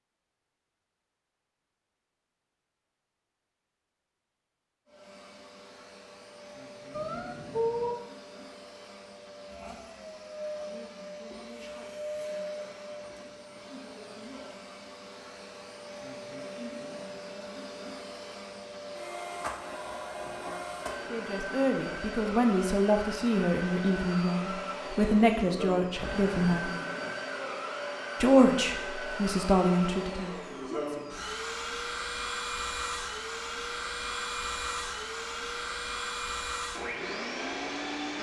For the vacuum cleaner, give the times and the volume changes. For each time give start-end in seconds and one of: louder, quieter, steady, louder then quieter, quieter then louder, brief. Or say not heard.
4.8-38.1 louder.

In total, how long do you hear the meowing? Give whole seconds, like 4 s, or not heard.
2 s.